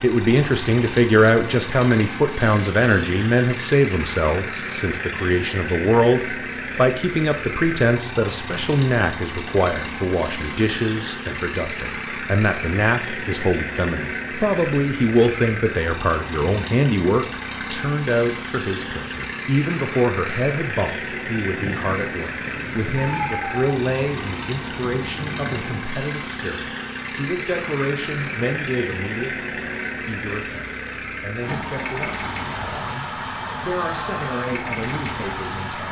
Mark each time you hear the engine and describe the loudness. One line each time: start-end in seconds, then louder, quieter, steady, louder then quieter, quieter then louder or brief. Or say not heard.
0.0-35.8 steady.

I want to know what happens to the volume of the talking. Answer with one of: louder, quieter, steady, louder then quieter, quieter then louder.
quieter.